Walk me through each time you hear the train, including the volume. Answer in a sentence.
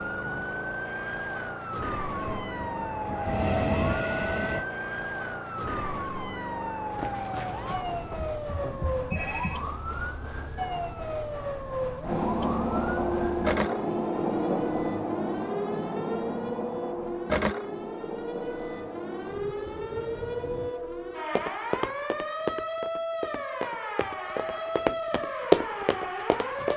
The train can be heard briefly from 2.1 to 4.7 s; and from 12.0 to 20.8 s, getting quieter.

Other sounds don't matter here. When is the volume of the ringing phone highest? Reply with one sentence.
The volume of the ringing phone peaks at 9 seconds.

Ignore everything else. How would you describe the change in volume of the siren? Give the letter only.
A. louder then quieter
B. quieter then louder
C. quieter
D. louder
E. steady
E.